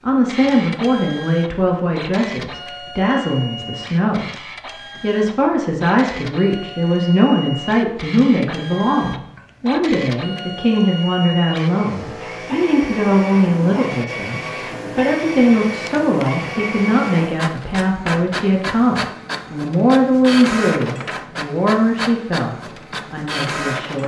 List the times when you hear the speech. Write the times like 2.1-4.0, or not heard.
0.0-4.4, 5.0-24.0.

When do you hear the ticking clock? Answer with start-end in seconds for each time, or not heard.
not heard.